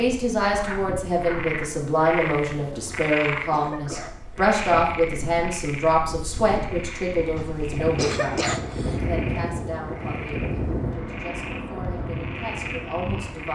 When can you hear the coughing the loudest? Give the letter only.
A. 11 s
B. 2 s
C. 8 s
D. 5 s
C.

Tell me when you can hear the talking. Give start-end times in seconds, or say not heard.
0.0-13.5.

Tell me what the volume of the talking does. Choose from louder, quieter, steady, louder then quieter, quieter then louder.
quieter.